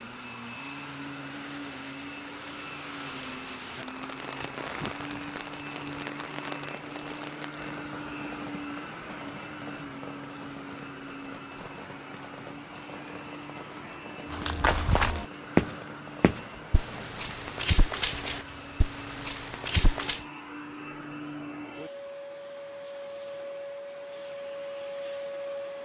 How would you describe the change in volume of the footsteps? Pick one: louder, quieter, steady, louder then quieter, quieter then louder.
quieter.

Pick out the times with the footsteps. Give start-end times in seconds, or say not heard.
14.3-20.2.